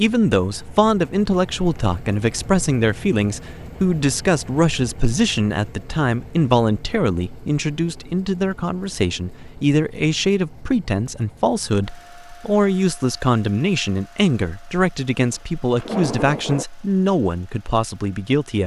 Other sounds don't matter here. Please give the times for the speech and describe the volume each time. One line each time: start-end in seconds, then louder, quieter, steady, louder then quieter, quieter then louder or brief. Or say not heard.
0.0-18.6 steady.